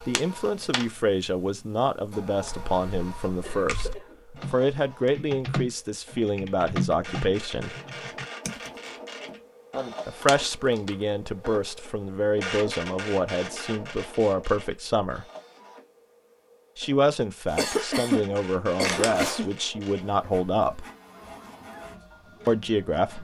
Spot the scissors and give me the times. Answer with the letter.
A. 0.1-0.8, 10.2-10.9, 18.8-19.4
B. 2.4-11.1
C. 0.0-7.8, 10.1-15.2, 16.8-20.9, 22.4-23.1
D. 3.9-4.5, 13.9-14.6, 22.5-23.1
A.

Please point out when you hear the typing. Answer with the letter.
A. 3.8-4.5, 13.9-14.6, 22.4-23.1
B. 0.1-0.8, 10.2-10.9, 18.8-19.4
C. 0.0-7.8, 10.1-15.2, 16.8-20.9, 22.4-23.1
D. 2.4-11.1
D.